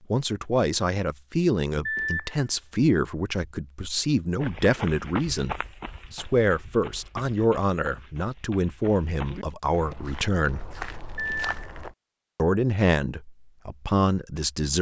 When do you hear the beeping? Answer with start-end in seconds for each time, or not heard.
1.9-2.4, 11.2-11.6.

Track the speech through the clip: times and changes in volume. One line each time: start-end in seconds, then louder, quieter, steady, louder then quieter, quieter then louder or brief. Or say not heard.
0.1-10.7 steady
12.3-14.7 brief.